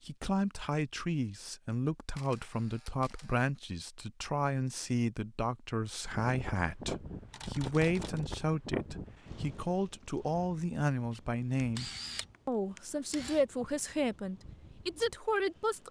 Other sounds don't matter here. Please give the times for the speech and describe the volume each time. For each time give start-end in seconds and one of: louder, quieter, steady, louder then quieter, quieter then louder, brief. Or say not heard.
0.1-15.8 steady.